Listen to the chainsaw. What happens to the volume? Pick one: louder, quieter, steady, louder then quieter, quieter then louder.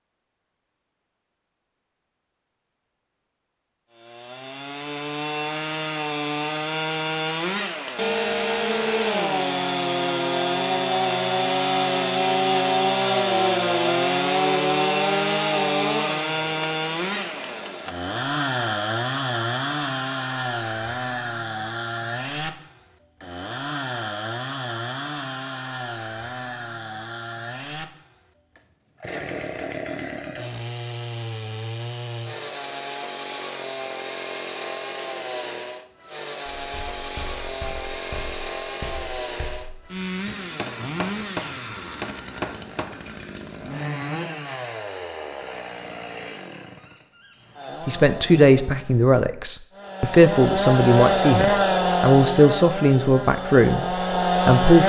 quieter then louder.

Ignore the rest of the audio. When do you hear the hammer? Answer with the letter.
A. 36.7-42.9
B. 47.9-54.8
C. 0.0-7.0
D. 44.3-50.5
A.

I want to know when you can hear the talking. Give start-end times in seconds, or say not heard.
47.9-54.8.